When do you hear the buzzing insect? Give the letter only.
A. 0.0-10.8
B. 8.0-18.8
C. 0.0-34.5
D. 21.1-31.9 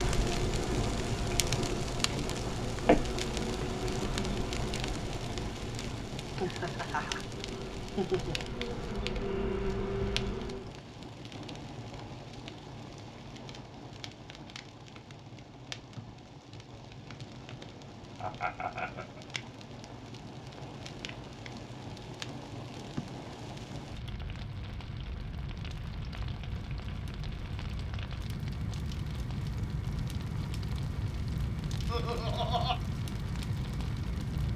A.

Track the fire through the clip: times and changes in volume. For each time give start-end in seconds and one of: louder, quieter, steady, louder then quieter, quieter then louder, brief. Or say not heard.
0.0-34.5 quieter then louder.